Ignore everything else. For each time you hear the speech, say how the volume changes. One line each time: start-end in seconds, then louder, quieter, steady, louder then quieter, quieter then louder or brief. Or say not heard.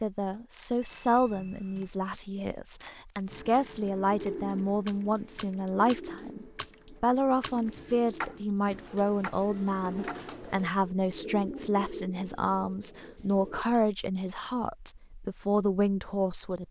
0.0-16.6 steady.